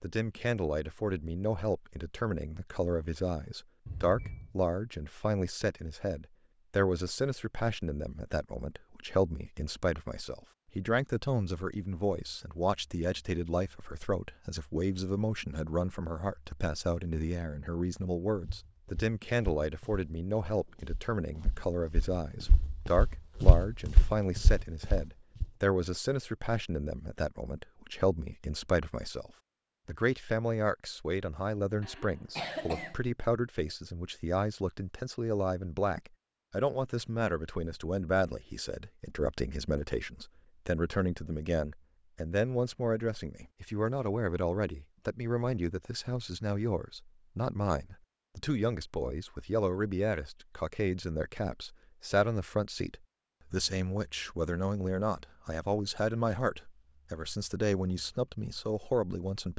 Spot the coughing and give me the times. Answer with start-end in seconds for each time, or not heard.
3.9-4.5, 31.8-33.0.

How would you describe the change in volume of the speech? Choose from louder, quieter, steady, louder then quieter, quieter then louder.
steady.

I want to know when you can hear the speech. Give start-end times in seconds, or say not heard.
0.0-59.5.